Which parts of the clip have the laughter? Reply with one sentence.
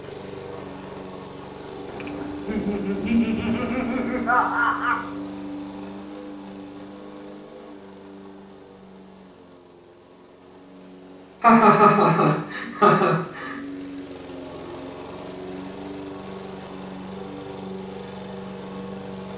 You can hear the laughter from 2.5 to 5.0 s and from 11.4 to 13.5 s.